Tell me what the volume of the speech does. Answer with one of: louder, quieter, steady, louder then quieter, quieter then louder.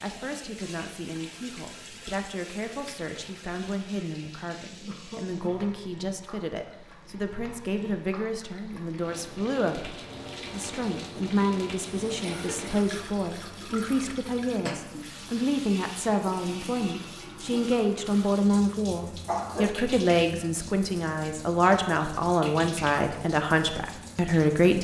louder.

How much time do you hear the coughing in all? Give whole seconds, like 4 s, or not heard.
2 s.